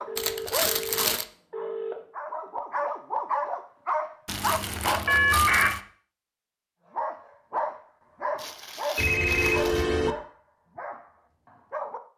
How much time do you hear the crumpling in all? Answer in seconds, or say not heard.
4 s.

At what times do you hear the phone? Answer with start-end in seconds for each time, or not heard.
0.1-1.9, 5.0-5.7, 8.9-10.2.